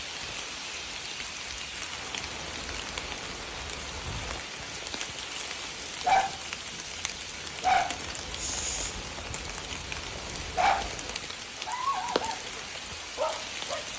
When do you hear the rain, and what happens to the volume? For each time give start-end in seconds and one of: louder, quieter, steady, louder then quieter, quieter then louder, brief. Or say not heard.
0.0-13.9 steady.